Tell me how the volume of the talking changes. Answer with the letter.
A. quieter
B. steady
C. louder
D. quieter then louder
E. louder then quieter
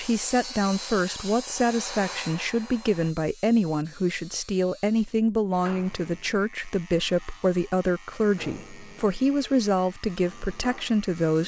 B.